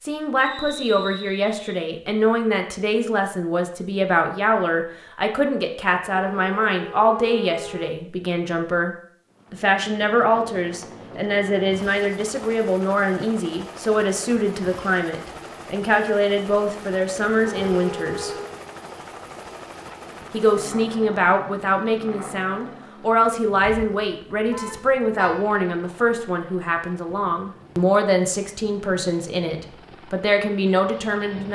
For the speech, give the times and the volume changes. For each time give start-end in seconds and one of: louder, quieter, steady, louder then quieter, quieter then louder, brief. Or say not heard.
0.0-18.3 steady
20.3-31.5 steady.